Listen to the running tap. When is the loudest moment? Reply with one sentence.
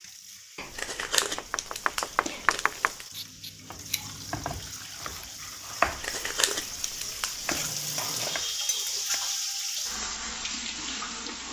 The volume of the running tap peaks at 9 seconds.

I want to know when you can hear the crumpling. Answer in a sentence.
You can hear the crumpling from 0.6 to 3.0 s and from 5.8 to 7.8 s.